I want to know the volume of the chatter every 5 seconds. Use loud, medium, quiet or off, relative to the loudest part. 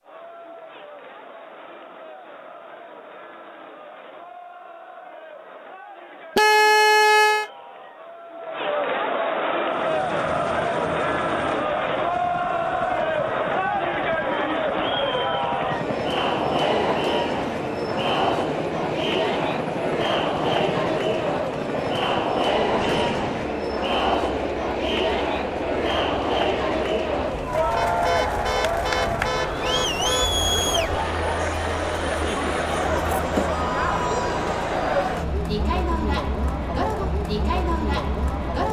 quiet, medium, loud, loud, loud, loud, loud, loud.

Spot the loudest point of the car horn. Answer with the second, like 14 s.
7 s.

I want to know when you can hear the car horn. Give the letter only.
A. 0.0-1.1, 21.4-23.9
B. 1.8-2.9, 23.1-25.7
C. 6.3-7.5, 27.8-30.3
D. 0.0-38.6
C.